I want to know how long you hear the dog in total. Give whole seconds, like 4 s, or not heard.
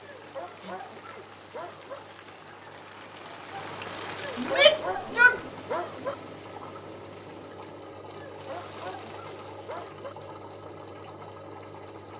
6 s.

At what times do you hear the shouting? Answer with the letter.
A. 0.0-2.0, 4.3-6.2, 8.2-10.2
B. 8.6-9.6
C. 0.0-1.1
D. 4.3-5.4
D.